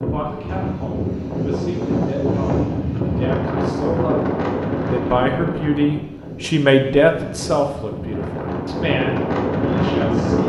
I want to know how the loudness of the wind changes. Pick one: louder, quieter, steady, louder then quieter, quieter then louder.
quieter then louder.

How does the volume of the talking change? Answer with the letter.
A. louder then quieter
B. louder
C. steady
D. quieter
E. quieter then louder
A.